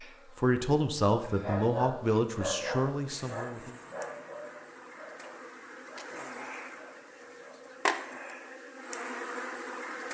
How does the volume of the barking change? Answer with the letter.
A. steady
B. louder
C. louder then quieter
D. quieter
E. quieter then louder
D.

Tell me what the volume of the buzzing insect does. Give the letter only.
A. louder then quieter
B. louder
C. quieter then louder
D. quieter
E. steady
B.